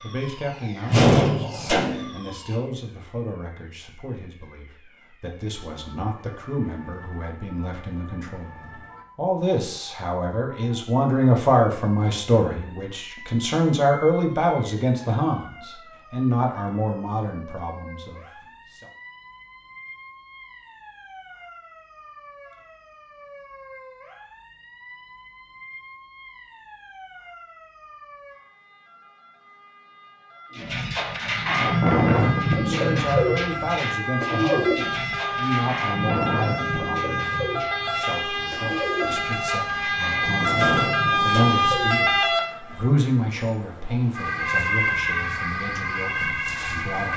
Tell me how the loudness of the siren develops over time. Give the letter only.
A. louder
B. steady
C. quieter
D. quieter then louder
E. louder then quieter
A.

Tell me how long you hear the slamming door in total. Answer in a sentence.
You can hear the slamming door for 2 seconds altogether.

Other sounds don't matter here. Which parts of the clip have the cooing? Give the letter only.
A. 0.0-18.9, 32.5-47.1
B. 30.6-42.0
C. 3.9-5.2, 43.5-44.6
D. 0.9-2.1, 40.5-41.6
B.